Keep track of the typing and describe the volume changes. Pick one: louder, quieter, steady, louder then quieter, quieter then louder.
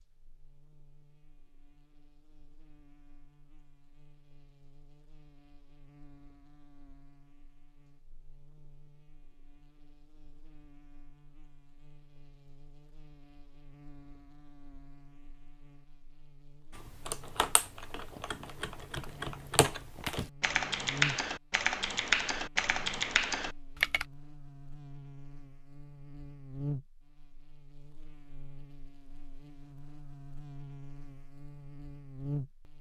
louder.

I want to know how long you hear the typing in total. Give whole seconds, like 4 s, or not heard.
7 s.